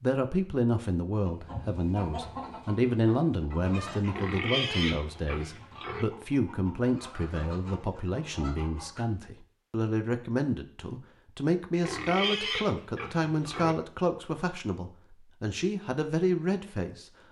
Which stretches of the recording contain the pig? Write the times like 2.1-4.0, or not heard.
4.0-6.0, 11.7-13.8.